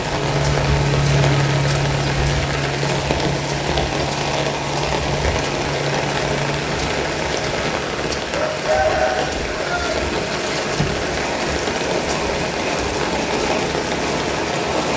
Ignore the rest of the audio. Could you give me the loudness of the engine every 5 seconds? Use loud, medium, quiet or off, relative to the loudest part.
loud, medium, off.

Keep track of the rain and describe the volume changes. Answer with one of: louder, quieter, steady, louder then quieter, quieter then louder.
steady.